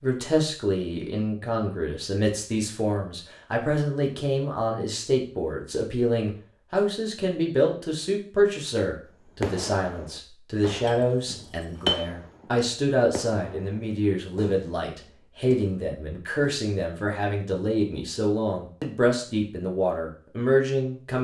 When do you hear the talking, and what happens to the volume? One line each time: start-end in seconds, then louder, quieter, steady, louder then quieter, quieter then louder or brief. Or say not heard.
0.0-21.1 steady.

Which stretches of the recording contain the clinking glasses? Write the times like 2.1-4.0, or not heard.
10.8-11.9.